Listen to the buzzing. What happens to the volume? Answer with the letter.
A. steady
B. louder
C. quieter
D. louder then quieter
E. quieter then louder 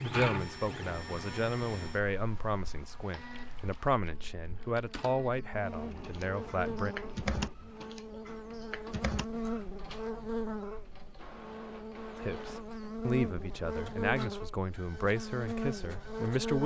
B.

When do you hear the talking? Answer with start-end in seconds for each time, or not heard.
0.0-7.0, 12.2-16.6.